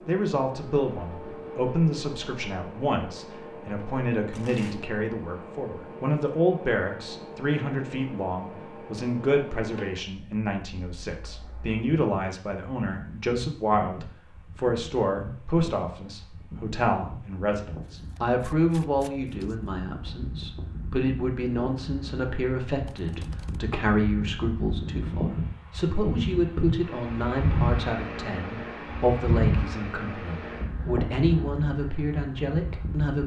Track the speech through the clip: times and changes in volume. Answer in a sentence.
The speech can be heard from 0.1 to 33.2 s, at a steady volume.